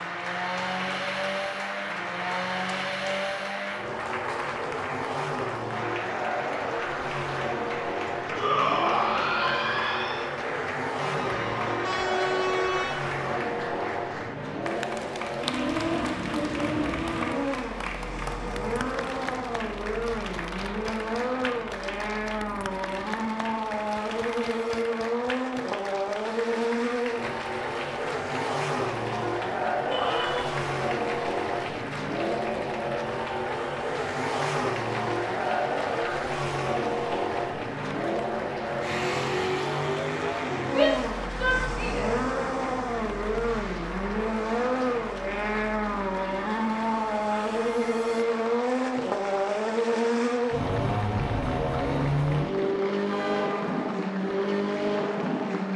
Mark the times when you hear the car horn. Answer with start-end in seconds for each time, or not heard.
11.0-13.0, 53.0-53.7.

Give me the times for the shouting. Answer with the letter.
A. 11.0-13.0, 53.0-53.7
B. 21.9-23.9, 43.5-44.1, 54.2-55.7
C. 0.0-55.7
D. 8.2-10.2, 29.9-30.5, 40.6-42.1
D.